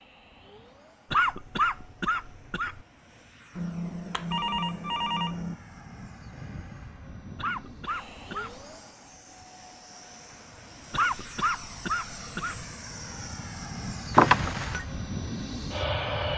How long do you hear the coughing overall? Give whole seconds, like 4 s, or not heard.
5 s.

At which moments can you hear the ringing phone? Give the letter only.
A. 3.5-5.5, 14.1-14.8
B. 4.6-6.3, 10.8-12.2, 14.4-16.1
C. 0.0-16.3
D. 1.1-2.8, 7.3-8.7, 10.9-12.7
A.